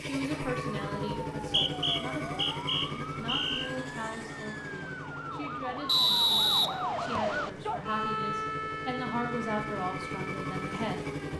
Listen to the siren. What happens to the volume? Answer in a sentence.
The loudness of the siren goes up, then down.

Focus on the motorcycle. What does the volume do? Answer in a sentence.
The loudness of the motorcycle goes down, then up.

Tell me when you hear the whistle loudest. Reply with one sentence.
The volume of the whistle peaks at 6 seconds.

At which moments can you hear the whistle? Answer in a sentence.
The whistle can be heard from 1.4 to 3.7 s and from 5.8 to 7.3 s.